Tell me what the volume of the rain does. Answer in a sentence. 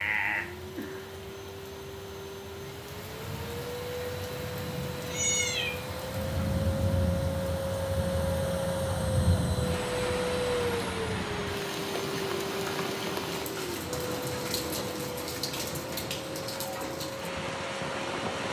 The loudness of the rain goes up.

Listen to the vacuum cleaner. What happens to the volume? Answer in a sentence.
The volume of the vacuum cleaner goes up, then down.